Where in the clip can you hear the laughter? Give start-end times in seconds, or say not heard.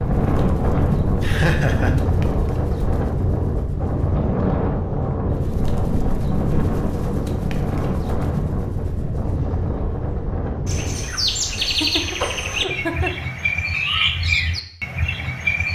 1.2-1.9, 11.6-13.2.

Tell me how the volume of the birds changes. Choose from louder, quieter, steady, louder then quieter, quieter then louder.
louder.